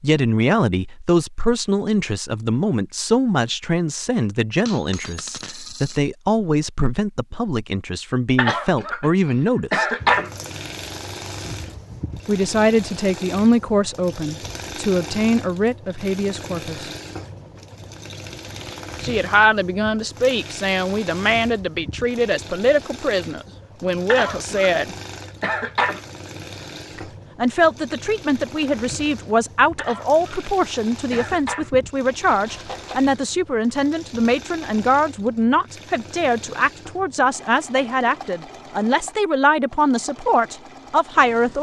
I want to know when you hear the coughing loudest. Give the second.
10 s.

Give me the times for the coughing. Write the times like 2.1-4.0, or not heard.
8.3-9.1, 9.7-10.3, 24.1-24.8, 25.4-26.0, 29.8-30.2, 31.1-31.7.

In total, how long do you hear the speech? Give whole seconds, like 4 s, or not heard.
35 s.